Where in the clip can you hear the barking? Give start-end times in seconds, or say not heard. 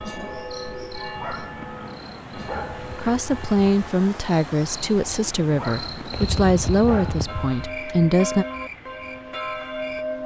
1.1-3.0, 5.5-7.5.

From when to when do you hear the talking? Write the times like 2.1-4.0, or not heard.
2.9-8.4.